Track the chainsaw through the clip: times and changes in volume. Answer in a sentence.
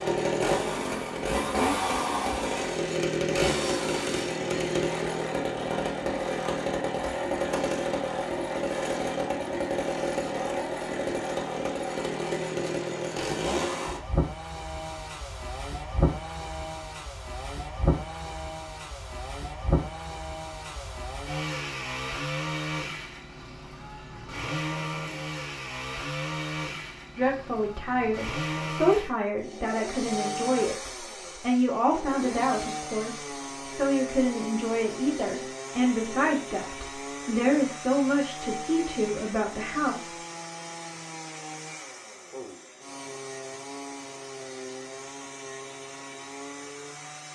You can hear the chainsaw from 0.0 to 47.3 s, getting quieter.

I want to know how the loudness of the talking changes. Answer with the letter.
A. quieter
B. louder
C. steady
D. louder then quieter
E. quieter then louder
C.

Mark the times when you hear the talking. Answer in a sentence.
The talking can be heard from 27.1 to 40.1 s.